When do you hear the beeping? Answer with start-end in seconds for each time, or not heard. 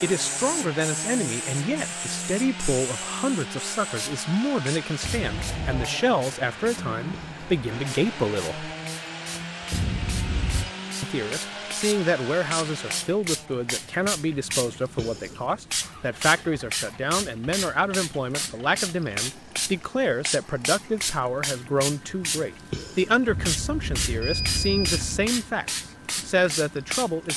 5.0-5.8, 9.7-10.7, 23.2-25.3.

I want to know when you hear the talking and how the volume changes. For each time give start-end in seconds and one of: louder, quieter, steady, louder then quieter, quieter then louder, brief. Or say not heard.
0.0-8.7 steady
11.0-27.3 steady.